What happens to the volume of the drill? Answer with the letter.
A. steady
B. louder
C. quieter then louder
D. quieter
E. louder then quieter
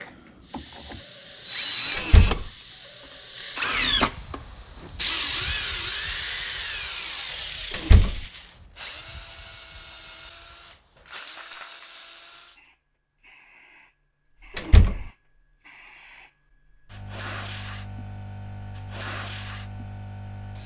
E.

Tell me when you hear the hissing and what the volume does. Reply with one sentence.
The hissing can be heard from 0.0 to 20.6 s, getting quieter then louder.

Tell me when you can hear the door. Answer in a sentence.
You can hear the door from 1.9 to 2.5 s, from 7.7 to 8.2 s and from 14.6 to 15.1 s.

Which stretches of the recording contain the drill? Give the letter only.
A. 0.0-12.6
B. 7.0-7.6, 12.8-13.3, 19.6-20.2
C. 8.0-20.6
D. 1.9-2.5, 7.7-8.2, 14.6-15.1
A.